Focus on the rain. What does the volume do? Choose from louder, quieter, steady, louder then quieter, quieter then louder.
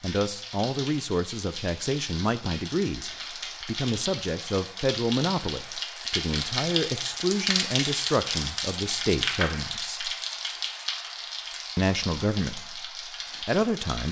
louder then quieter.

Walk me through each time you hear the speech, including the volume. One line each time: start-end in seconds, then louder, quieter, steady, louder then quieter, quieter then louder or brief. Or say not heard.
0.0-10.1 steady
11.8-14.0 brief.